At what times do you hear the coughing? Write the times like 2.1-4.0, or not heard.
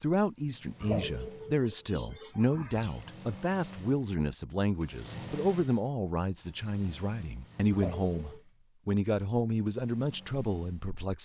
0.8-3.1, 7.7-8.4.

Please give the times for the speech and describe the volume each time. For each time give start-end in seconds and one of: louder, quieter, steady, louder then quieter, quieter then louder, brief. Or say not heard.
0.0-11.1 steady.